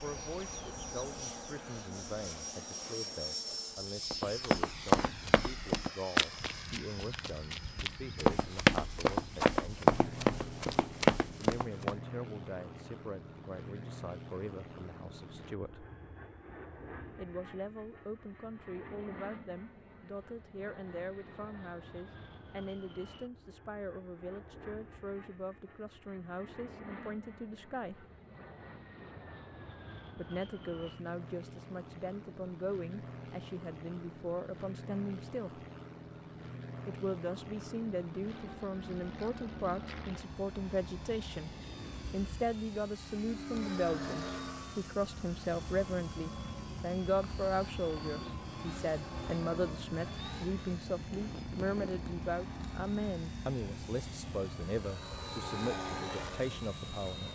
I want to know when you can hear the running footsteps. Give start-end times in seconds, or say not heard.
4.1-11.9.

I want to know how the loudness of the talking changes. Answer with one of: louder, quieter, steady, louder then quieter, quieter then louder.
louder.